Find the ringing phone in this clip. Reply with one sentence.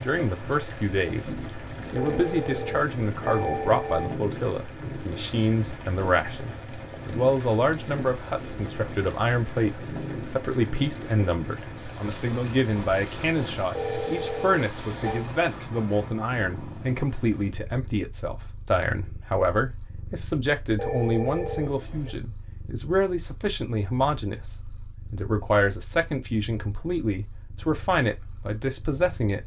You can hear the ringing phone from 1.9 to 4.2 s, from 13.8 to 15.2 s and from 20.8 to 22.1 s.